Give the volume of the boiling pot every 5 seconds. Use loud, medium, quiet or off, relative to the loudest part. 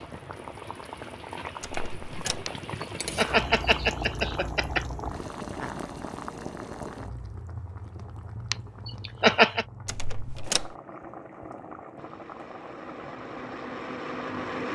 loud, loud, medium.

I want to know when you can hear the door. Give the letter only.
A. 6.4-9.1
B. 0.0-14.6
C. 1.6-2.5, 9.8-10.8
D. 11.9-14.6
C.